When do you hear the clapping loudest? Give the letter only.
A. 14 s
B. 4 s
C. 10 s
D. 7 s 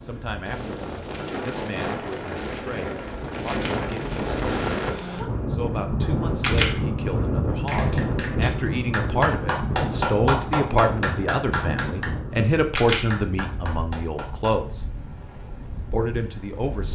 C.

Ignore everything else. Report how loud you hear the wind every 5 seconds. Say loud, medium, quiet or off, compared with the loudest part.
loud, loud, medium, quiet.